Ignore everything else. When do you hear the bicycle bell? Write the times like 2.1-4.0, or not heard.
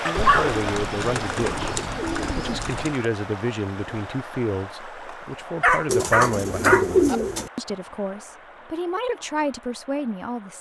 not heard.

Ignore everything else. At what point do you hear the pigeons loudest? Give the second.
7 s.